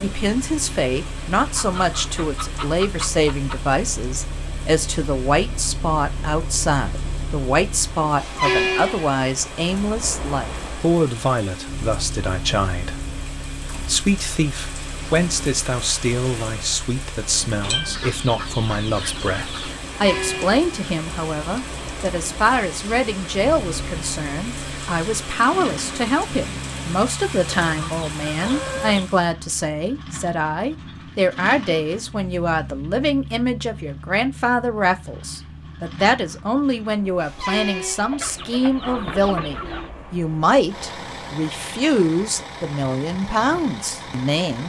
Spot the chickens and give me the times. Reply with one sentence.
The chickens can be heard from 1.6 to 3.5 s, from 17.9 to 19.8 s, from 27.6 to 29.1 s and from 38.1 to 39.9 s.